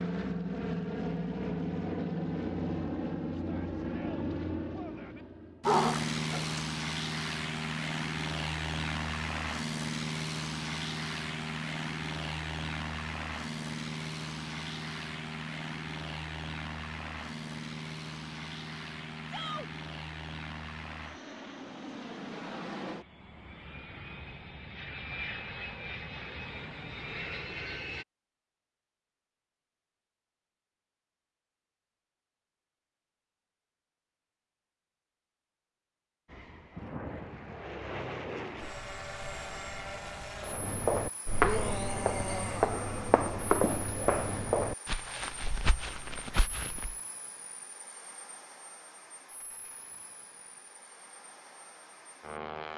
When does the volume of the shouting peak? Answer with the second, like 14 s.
42 s.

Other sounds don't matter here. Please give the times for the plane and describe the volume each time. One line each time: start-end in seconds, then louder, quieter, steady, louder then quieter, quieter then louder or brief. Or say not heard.
0.0-28.1 quieter
36.2-52.7 quieter.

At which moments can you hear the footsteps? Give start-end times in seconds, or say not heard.
40.4-47.0.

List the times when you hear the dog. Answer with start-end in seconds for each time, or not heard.
5.7-6.6.